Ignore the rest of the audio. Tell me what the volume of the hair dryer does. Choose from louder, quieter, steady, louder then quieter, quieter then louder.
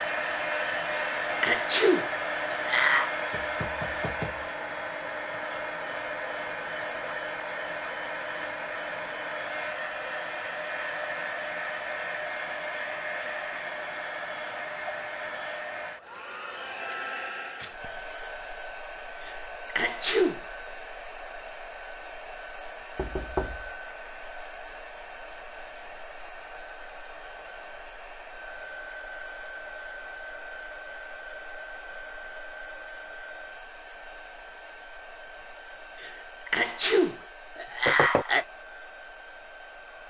quieter.